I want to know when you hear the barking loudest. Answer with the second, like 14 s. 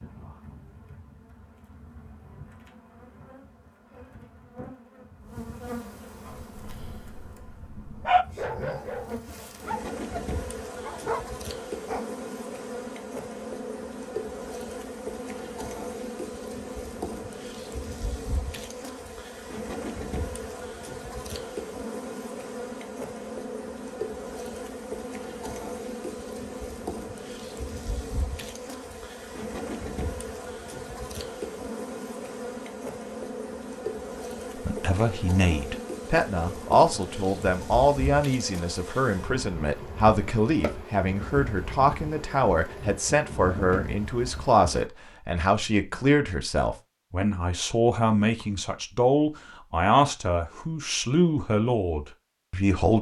8 s.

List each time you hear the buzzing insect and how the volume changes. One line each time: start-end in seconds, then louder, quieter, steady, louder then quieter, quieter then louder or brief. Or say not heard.
0.0-44.9 louder.